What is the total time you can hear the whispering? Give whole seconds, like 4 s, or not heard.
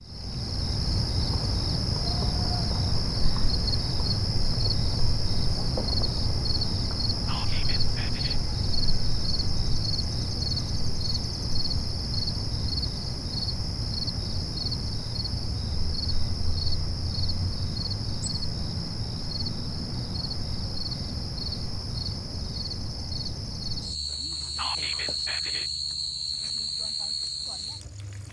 2 s.